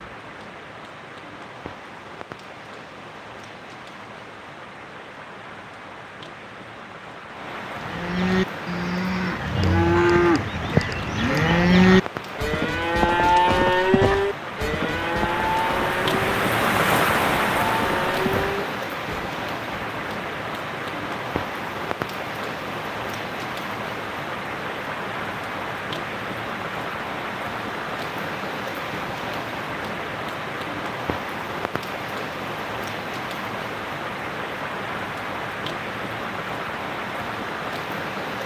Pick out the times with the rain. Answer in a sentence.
You can hear the rain from 0.0 to 38.4 s.